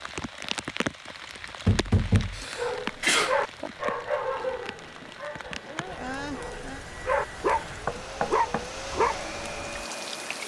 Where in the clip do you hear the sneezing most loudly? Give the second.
3 s.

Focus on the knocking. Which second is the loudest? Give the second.
2 s.